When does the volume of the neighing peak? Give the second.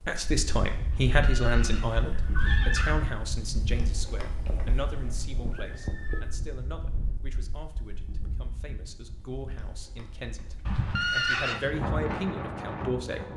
11 s.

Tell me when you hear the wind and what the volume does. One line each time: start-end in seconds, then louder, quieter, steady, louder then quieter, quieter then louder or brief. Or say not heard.
0.0-13.3 quieter then louder.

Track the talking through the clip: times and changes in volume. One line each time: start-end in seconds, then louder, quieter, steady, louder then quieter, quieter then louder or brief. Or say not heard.
0.1-13.3 quieter then louder.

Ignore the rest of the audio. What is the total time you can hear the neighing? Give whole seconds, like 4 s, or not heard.
5 s.